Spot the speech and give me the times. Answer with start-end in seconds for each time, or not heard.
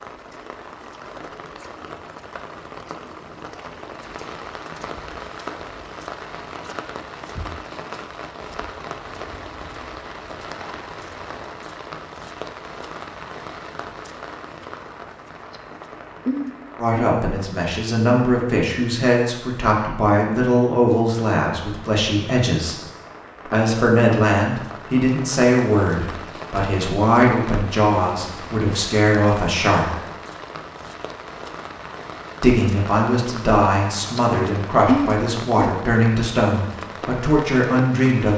16.8-22.8, 23.4-30.0, 32.4-38.3.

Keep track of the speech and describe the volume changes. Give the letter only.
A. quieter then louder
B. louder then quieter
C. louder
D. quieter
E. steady
E.